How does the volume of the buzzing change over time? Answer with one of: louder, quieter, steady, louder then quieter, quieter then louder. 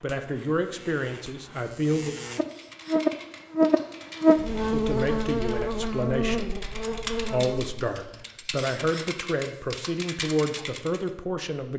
louder then quieter.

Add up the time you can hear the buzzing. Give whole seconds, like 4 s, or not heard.
8 s.